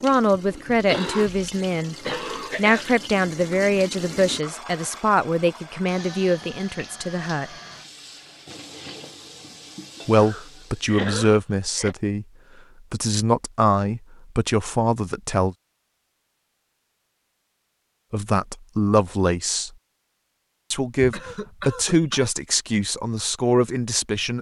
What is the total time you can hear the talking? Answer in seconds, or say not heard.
17 s.